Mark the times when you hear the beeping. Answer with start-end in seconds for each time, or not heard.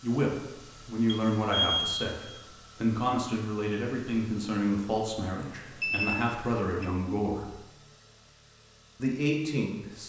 1.1-2.0, 5.5-6.6.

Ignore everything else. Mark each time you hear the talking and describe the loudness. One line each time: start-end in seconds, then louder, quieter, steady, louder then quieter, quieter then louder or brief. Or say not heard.
0.0-7.5 steady
8.9-10.0 brief.